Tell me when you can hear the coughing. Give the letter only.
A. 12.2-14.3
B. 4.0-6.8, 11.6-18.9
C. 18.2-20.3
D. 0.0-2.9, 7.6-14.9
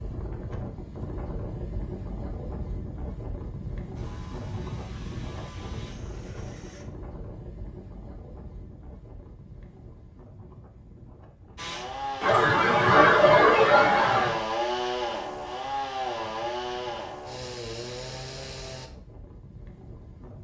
A.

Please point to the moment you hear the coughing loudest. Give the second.
13 s.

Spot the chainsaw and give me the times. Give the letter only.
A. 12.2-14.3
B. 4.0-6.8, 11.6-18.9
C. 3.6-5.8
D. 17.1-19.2
B.